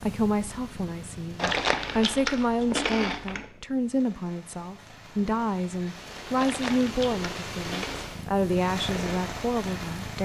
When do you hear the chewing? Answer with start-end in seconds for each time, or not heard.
1.4-3.5, 6.3-8.1.